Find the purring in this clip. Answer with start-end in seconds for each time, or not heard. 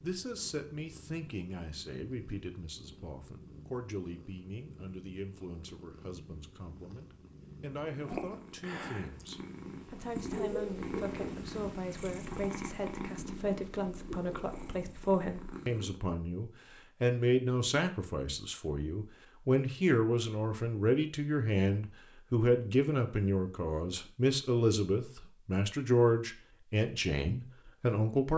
0.0-16.0.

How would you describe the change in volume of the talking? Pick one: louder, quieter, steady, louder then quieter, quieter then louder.
louder.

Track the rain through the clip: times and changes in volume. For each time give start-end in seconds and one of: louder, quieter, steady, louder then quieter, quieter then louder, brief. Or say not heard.
not heard.